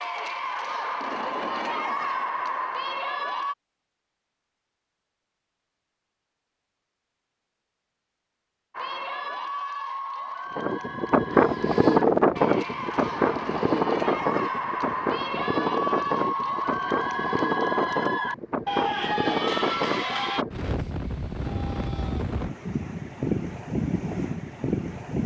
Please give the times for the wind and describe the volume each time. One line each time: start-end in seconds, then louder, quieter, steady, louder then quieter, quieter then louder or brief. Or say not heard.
10.6-25.2 quieter.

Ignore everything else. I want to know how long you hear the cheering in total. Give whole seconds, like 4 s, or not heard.
15 s.